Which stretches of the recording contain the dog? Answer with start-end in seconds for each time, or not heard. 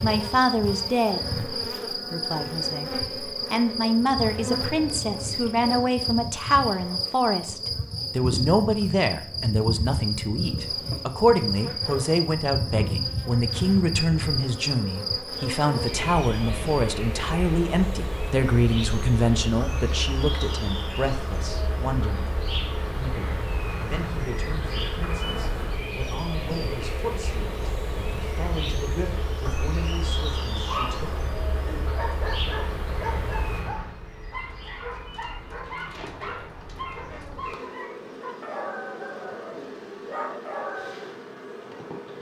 30.6-41.1.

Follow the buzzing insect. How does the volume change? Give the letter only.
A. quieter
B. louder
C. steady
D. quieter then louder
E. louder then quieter
A.